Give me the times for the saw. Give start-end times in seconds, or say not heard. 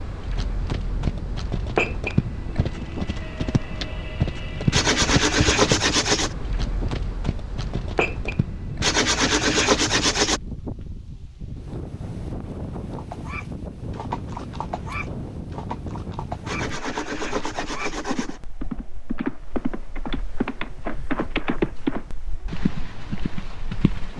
4.7-6.3, 8.8-10.4, 16.4-18.4.